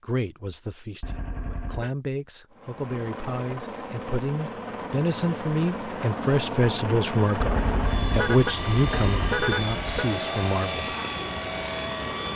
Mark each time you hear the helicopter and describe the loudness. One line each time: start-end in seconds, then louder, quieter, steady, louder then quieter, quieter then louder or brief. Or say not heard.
2.5-12.3 louder.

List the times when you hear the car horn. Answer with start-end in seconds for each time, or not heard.
1.0-1.9, 7.4-10.1.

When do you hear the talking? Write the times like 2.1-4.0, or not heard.
0.0-10.9.